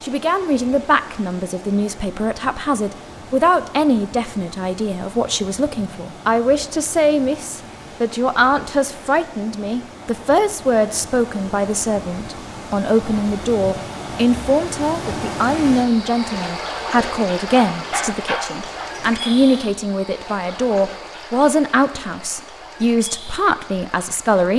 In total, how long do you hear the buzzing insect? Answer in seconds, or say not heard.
not heard.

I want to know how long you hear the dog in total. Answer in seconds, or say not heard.
2 s.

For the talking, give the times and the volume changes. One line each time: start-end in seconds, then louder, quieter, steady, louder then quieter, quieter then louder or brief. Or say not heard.
0.0-24.5 steady.